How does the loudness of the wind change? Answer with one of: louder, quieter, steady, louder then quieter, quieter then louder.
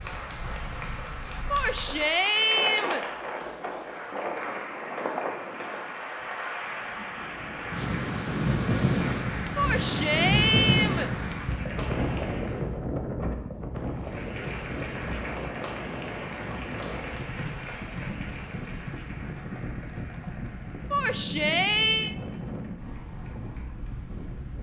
louder then quieter.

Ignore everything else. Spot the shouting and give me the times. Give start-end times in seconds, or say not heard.
1.5-3.0, 9.6-11.1, 20.9-22.1.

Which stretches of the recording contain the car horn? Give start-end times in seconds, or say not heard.
not heard.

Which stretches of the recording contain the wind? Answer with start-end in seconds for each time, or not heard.
0.0-24.5.